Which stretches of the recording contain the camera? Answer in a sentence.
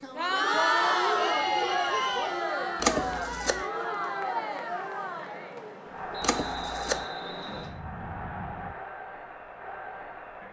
You can hear the camera from 2.8 to 3.6 s and from 6.2 to 7.0 s.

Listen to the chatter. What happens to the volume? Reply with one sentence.
The volume of the chatter goes down.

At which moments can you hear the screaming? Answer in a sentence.
The screaming can't be heard in this clip.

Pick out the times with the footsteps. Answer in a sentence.
You can't hear the footsteps here.